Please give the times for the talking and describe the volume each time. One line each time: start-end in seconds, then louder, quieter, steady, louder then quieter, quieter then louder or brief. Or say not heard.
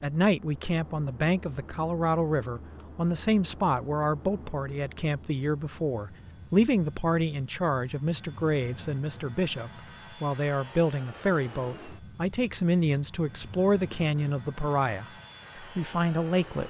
0.0-16.6 steady.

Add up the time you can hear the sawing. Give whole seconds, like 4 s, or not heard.
not heard.